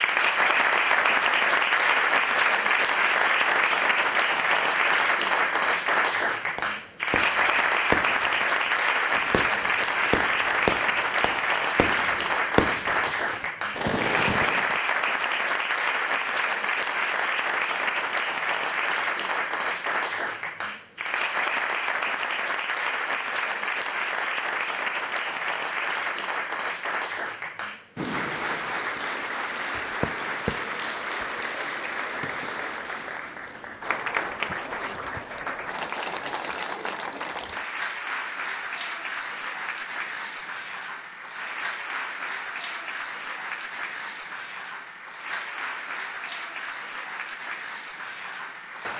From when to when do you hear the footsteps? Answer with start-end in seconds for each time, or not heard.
not heard.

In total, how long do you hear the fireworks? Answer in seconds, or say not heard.
8 s.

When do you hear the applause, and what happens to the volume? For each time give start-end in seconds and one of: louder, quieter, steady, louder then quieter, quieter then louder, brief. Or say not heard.
0.0-48.9 quieter.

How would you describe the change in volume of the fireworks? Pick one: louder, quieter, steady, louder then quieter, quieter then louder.
quieter then louder.